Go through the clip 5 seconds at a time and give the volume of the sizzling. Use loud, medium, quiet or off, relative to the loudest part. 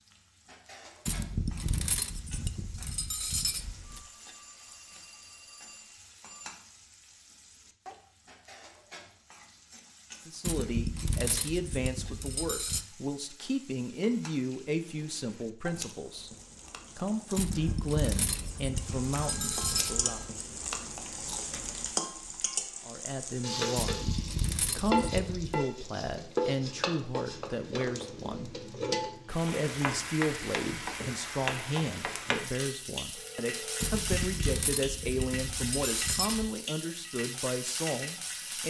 quiet, quiet, quiet, medium, loud, loud, loud, loud.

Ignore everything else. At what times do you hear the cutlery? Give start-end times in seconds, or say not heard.
1.1-4.0, 10.4-12.8, 17.4-20.0, 23.8-25.6, 33.8-36.5.